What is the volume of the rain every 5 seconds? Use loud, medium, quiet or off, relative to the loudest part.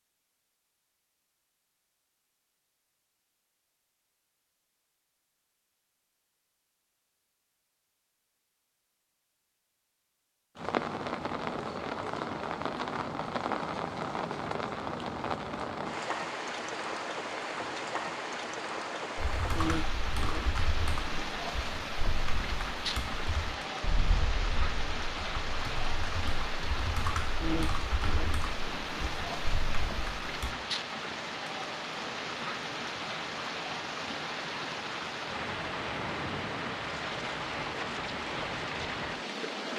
off, off, loud, loud, loud, loud, loud, loud.